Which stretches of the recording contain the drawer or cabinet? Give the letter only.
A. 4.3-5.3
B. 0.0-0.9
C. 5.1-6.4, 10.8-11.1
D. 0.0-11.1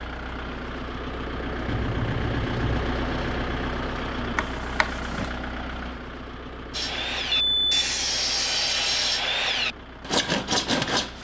A.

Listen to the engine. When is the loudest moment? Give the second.
3 s.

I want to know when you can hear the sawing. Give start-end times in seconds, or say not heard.
6.7-11.1.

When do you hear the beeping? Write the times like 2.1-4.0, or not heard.
1.6-3.0, 7.3-7.7.